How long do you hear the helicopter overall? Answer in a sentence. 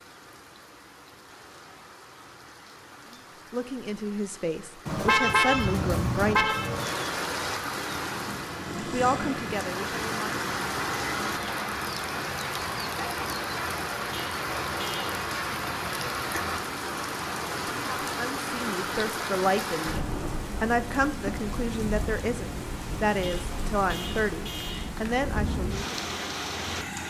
You can hear the helicopter for 4 seconds altogether.